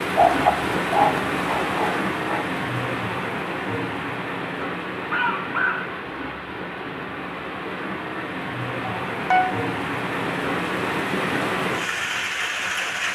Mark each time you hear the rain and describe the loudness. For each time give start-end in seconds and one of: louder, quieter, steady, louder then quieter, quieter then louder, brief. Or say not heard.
0.0-13.0 quieter then louder.